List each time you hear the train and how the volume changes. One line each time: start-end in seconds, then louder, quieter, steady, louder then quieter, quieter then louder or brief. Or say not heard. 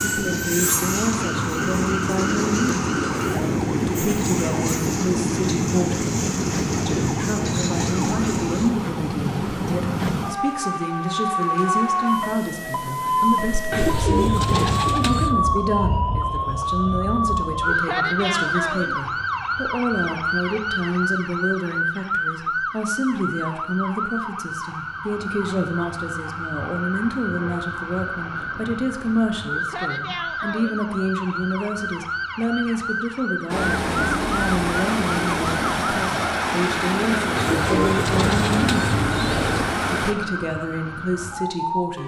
0.0-8.7 steady
33.5-40.1 steady.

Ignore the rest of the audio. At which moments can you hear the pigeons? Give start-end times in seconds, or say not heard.
13.7-15.3, 37.4-39.8.